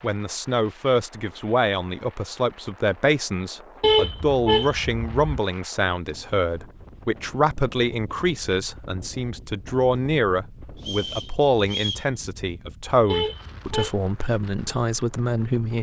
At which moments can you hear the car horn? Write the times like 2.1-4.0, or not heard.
3.8-5.3, 13.1-13.9.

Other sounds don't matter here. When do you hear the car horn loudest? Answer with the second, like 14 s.
4 s.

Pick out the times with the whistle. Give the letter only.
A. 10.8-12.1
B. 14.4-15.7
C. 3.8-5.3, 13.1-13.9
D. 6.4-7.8
A.